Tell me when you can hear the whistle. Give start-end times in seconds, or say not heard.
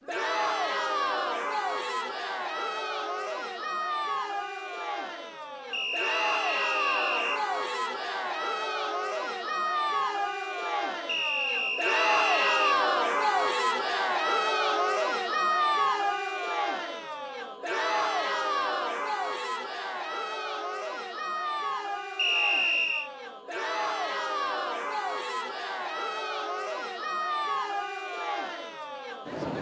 5.7-7.4, 11.1-12.8, 22.1-23.1.